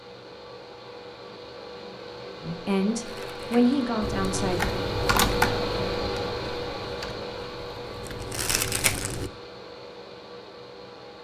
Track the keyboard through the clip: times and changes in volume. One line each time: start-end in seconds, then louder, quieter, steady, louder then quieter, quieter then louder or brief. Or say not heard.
4.0-9.3 quieter then louder.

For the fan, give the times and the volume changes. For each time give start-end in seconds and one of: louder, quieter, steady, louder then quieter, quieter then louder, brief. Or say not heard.
0.0-11.1 louder then quieter.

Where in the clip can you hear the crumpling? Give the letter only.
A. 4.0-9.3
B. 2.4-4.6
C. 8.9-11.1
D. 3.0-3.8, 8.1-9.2
D.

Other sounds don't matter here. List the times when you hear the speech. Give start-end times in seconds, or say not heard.
2.4-4.6.